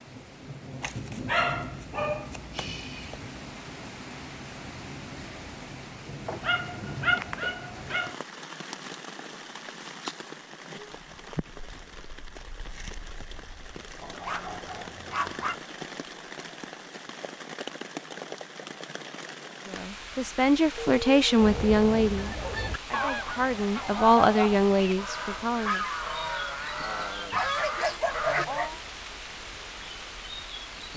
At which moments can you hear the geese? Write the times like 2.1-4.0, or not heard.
21.4-28.4.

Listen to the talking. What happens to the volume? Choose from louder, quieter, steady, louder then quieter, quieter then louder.
quieter then louder.